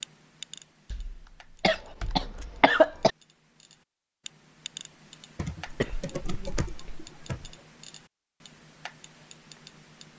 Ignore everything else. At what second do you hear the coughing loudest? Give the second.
3 s.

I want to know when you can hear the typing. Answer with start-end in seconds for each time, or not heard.
0.9-2.6, 5.3-7.5.